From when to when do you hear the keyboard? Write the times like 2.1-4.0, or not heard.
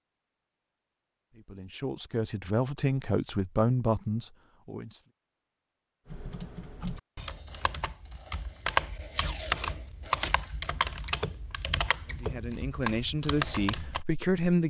6.0-14.1.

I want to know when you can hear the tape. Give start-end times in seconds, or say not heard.
9.1-10.4.